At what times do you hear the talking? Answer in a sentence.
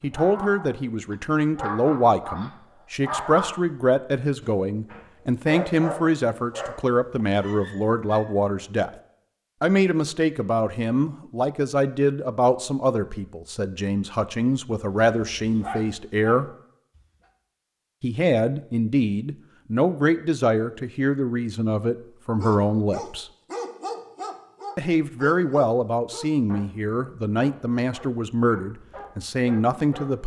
The talking can be heard from 0.0 to 8.9 s, from 9.6 to 16.5 s, from 18.0 to 23.2 s and from 24.8 to 30.2 s.